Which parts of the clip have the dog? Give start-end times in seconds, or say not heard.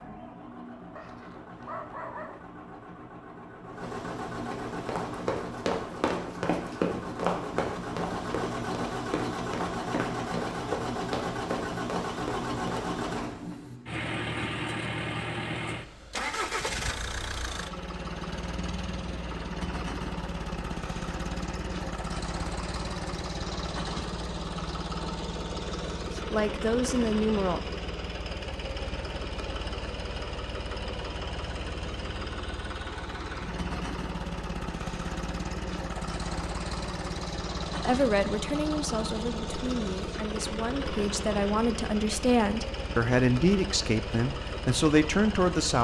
0.9-2.5.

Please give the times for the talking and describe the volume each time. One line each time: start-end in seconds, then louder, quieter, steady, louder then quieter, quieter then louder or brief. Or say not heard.
26.1-27.6 brief
37.8-45.7 louder.